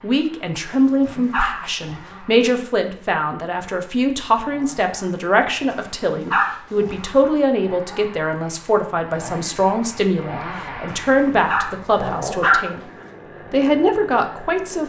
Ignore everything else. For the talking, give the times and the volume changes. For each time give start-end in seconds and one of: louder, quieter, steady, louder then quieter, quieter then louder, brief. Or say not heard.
0.0-12.8 steady
13.5-14.8 brief.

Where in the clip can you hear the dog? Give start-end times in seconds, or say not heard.
0.7-2.3, 5.7-7.3, 10.8-13.1.